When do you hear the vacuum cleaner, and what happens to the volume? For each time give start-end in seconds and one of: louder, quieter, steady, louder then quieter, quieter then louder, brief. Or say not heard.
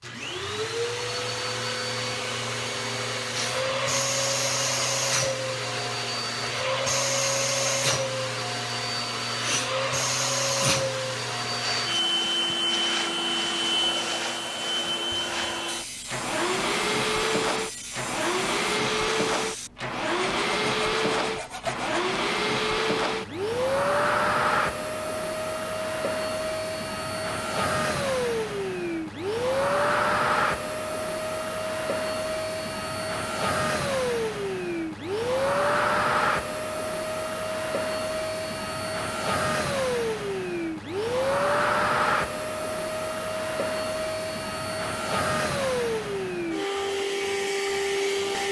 0.0-48.4 steady.